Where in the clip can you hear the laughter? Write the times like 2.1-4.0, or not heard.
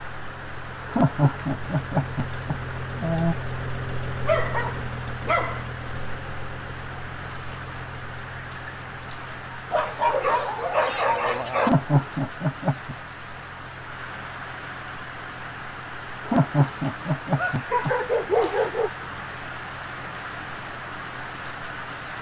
0.9-3.4, 11.6-12.9, 16.2-17.9.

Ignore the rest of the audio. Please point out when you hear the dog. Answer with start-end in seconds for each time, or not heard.
4.2-5.7, 9.7-11.7, 17.4-18.9.